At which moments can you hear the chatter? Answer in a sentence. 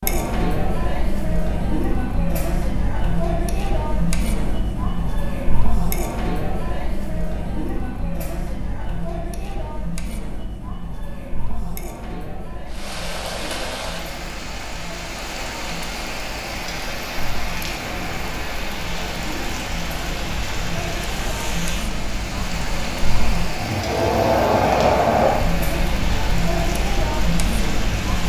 The chatter can be heard from 0.0 to 28.2 s.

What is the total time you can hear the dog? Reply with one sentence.
You can't hear the dog here.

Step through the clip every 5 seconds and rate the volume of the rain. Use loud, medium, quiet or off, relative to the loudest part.
off, off, loud, loud, loud, loud.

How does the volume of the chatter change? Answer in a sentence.
The volume of the chatter goes down, then up.